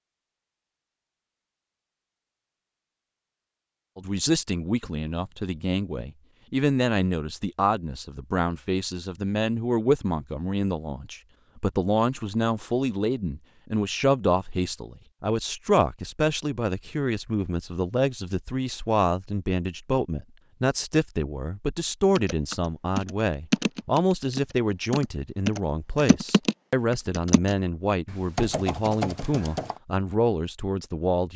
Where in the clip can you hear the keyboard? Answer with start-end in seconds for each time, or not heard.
22.1-29.8.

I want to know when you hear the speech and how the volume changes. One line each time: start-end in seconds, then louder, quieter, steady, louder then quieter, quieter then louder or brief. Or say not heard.
4.0-31.3 steady.